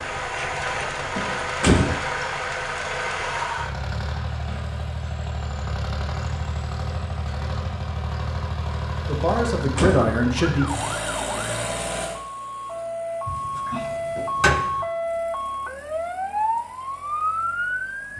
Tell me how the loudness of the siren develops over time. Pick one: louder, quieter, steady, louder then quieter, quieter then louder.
louder.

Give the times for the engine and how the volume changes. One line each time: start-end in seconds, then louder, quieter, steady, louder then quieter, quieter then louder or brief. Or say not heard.
0.0-18.1 quieter.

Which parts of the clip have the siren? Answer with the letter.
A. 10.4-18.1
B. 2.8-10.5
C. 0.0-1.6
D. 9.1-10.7
A.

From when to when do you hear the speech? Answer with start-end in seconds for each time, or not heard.
9.1-10.7.